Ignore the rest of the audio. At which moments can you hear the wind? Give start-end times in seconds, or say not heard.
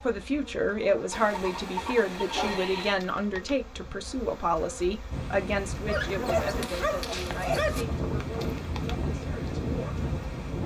5.1-10.6.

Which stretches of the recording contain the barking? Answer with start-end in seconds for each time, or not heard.
2.3-2.7, 5.8-7.8.